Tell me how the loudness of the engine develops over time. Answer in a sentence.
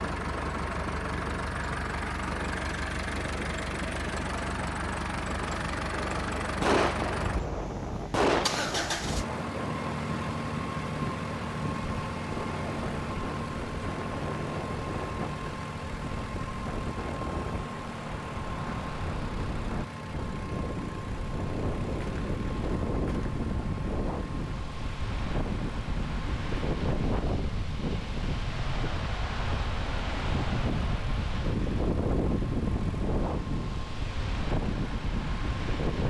The loudness of the engine goes down.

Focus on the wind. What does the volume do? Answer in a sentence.
The loudness of the wind goes up.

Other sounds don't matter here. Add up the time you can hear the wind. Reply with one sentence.
You can hear the wind for 36 seconds altogether.